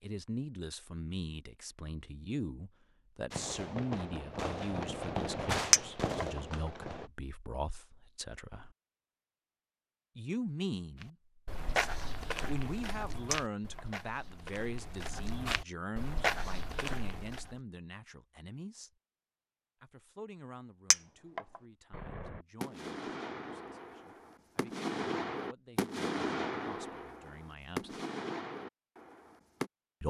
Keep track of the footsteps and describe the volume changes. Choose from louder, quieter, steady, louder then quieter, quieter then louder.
quieter then louder.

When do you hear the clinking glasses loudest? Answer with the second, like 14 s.
6 s.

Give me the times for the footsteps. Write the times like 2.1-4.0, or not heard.
11.0-17.6.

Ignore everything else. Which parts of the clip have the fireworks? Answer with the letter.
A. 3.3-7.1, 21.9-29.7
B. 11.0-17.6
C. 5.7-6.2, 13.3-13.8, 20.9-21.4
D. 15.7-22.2
A.